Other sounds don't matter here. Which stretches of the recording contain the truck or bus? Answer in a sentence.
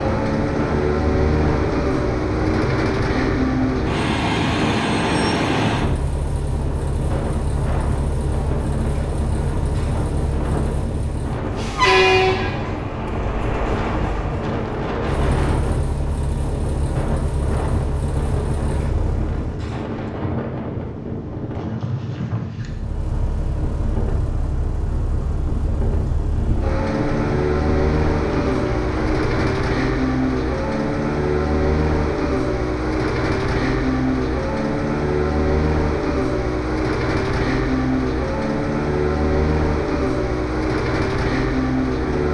The truck or bus can be heard from 0.0 to 19.4 s and from 22.6 to 42.2 s.